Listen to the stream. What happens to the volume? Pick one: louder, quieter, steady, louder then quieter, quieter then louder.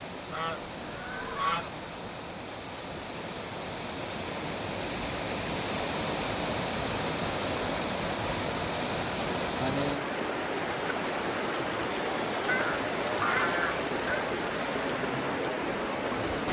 louder.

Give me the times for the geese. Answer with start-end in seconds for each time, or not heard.
0.3-1.7, 12.4-14.2.